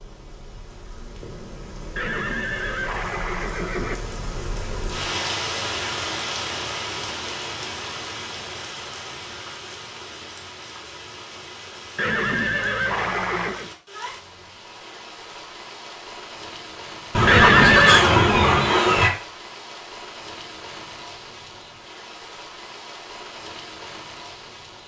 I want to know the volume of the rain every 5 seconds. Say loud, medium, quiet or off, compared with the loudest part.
medium, loud, medium, medium, medium.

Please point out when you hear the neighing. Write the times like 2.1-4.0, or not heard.
1.9-4.0, 11.9-13.7, 17.2-18.1.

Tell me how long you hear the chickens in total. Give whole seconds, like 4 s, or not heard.
2 s.